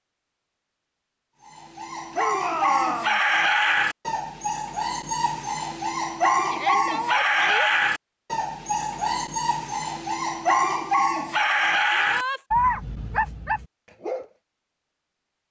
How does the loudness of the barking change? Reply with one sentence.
The volume of the barking stays about the same.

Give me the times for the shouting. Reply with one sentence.
You can hear the shouting from 2.1 to 3.2 s, from 6.5 to 7.7 s and from 11.9 to 12.4 s.